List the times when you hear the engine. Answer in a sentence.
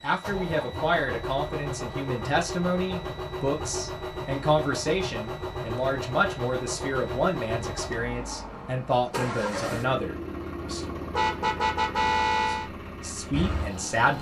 The engine can be heard from 0.0 to 14.1 s.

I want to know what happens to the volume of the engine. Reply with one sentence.
The volume of the engine stays about the same.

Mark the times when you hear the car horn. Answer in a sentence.
You can hear the car horn from 11.1 to 12.7 s.